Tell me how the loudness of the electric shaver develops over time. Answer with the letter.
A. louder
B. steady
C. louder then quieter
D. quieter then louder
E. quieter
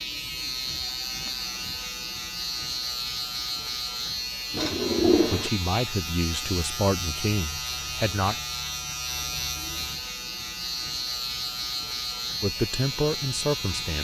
B.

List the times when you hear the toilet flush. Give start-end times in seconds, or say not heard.
4.5-5.5.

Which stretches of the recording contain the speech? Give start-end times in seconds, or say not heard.
5.2-8.3, 12.4-13.9.